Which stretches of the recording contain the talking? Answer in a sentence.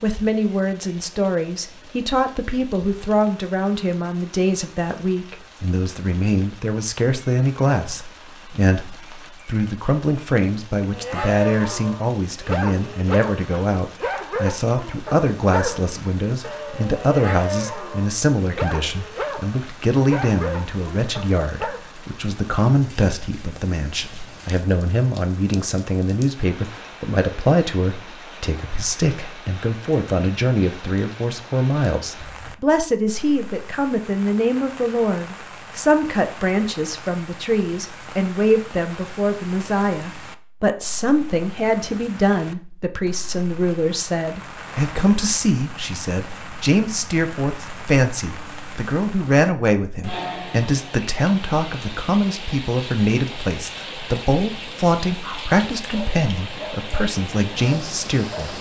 You can hear the talking from 0.0 to 58.5 s.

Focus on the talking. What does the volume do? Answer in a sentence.
The loudness of the talking stays about the same.